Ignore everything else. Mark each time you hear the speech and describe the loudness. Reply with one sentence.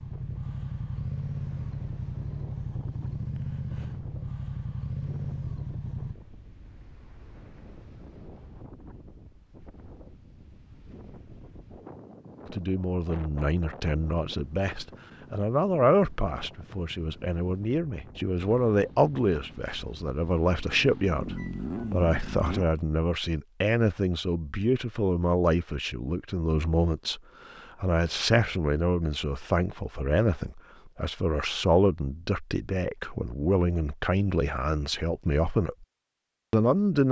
You can hear the speech from 12.4 to 35.9 s, at a steady volume; and briefly from 36.5 to 37.0 s.